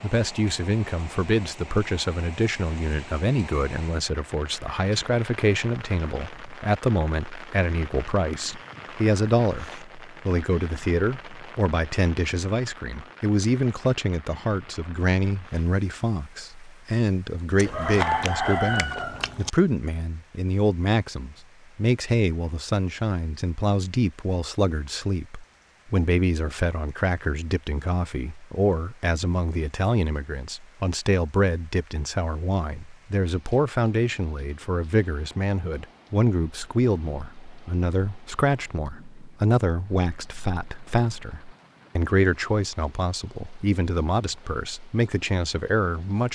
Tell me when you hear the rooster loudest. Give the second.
18 s.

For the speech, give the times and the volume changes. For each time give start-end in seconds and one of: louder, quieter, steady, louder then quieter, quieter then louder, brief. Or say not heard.
0.0-46.3 steady.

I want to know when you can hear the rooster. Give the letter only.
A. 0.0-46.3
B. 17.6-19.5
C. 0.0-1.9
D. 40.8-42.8
B.